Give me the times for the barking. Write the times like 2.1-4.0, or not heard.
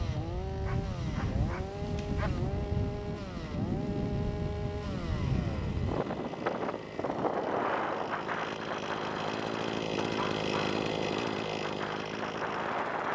0.7-2.5, 9.9-10.8.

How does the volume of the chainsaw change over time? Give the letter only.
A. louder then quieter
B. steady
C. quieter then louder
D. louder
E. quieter
D.